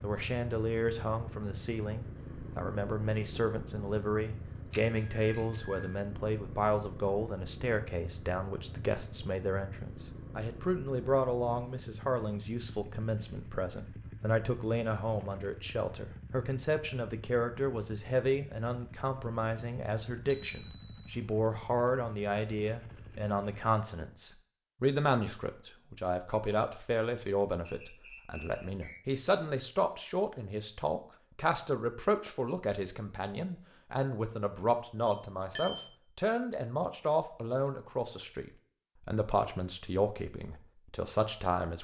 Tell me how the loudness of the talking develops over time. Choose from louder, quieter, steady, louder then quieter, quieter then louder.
steady.